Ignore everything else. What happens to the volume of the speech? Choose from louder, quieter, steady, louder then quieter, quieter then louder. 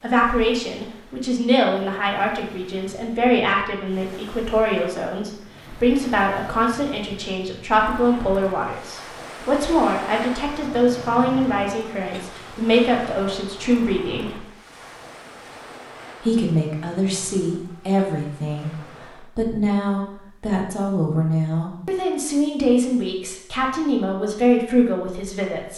steady.